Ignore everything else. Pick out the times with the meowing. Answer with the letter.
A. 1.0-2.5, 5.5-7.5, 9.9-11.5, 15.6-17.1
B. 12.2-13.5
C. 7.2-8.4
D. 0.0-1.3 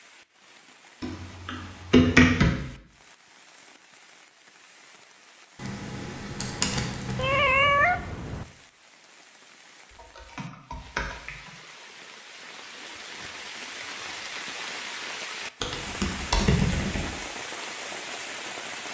C.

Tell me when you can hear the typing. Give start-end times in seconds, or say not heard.
1.0-2.5, 5.5-7.5, 9.9-11.5, 15.6-17.1.